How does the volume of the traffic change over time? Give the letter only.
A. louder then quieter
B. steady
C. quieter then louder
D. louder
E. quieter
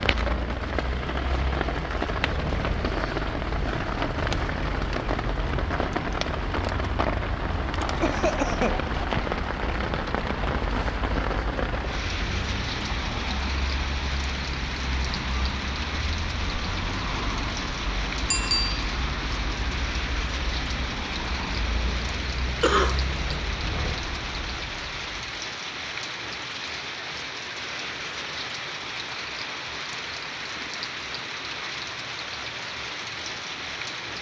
B.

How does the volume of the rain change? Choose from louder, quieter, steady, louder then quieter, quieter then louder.
steady.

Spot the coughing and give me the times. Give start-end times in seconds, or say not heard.
8.0-8.8, 22.6-23.4.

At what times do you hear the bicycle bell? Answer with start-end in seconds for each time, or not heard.
18.3-18.8.